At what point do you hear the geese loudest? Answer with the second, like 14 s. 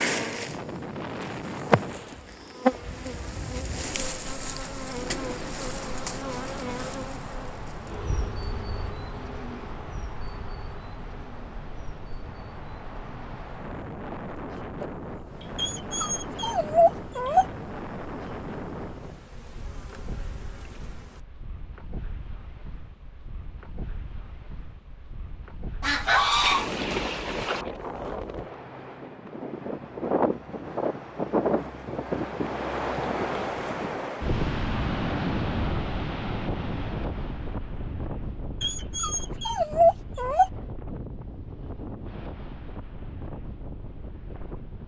26 s.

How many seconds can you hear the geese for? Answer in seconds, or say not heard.
2 s.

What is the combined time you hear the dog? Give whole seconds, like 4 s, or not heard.
4 s.